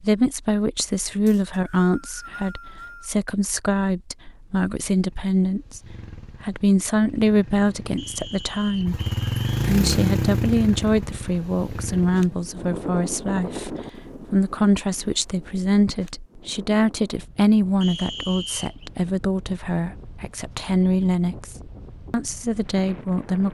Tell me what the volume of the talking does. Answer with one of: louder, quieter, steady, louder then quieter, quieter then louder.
steady.